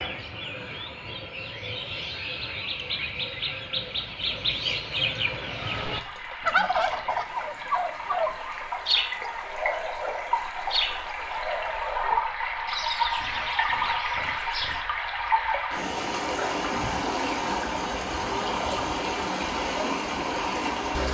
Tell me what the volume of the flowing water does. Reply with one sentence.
The loudness of the flowing water goes up.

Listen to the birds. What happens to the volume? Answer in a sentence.
The volume of the birds goes up, then down.